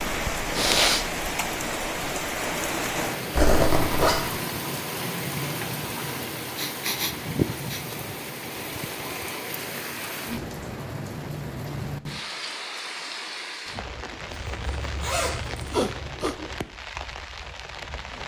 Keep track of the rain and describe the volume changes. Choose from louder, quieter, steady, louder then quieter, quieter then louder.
quieter.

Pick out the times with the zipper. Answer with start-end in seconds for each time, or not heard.
3.3-4.2, 14.2-16.1.